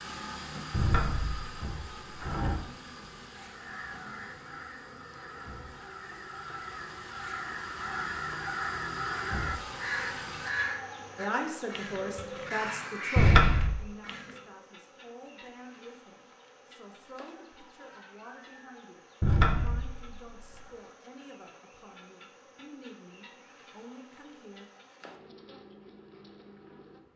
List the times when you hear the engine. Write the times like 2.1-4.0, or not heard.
0.0-10.5.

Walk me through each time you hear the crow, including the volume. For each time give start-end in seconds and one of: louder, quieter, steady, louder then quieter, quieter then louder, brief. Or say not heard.
3.4-14.4 louder.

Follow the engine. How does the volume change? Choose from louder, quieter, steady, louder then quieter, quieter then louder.
quieter then louder.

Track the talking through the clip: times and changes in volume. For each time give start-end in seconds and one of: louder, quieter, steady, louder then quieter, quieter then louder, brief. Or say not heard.
11.2-24.7 quieter.